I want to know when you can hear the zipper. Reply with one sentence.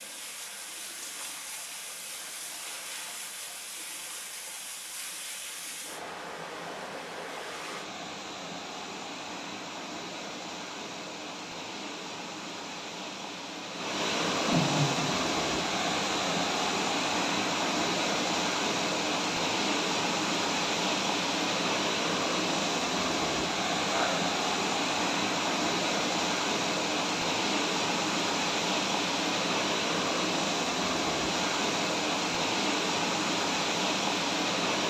The zipper can't be heard in this clip.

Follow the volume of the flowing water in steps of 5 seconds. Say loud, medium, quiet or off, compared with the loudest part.
quiet, medium, medium, loud, loud, loud, loud.